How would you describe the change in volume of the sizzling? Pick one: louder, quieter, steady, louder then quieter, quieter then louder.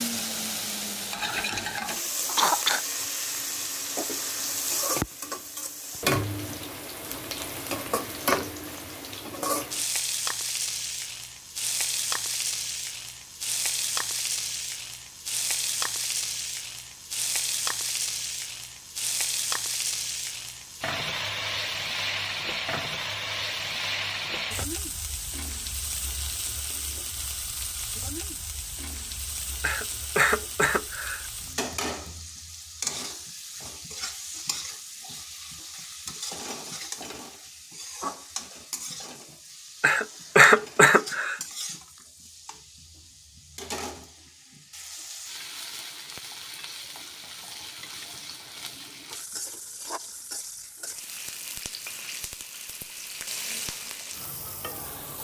quieter.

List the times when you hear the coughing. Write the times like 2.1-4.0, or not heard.
2.2-2.8, 29.6-31.3, 39.8-41.4.